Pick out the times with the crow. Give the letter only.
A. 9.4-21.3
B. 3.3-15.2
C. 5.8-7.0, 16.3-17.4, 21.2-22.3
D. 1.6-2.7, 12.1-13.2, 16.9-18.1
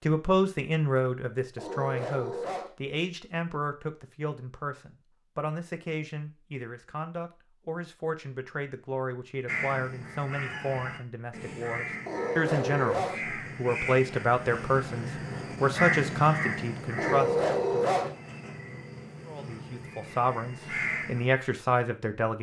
A.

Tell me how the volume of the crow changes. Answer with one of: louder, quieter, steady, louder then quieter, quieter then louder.
louder then quieter.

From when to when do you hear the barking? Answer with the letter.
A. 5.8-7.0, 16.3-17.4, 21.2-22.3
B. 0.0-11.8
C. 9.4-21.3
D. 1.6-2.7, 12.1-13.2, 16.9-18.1
D.